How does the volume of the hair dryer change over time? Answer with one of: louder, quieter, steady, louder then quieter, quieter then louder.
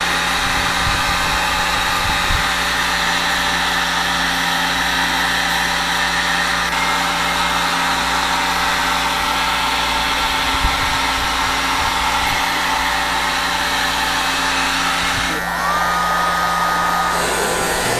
steady.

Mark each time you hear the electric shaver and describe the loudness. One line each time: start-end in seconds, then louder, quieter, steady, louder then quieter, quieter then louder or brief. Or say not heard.
0.0-17.9 steady.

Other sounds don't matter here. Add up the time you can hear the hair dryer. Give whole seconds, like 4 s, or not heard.
18 s.